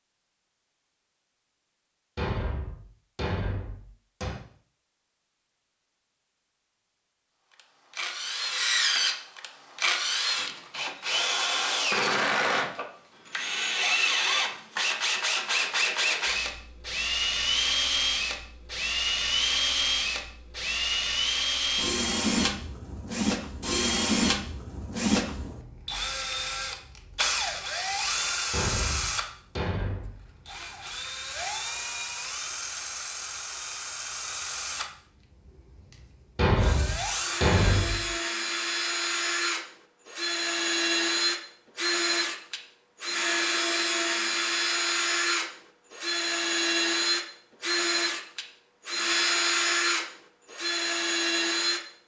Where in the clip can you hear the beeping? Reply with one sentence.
You can't hear the beeping here.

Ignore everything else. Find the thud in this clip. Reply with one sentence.
The thud can be heard from 2.1 to 4.4 s, from 28.5 to 30.1 s and from 36.4 to 38.0 s.